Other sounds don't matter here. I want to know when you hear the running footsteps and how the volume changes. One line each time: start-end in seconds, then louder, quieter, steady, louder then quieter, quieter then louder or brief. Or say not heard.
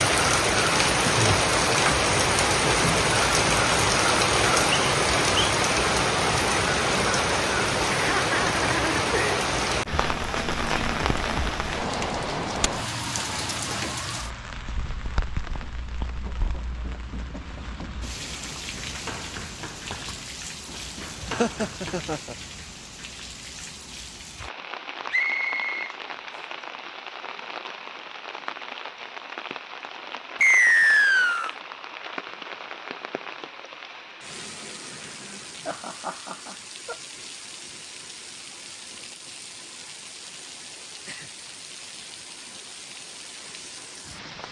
15.6-22.1 louder.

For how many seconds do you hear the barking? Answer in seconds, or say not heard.
not heard.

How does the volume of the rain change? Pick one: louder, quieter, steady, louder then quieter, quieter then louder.
quieter.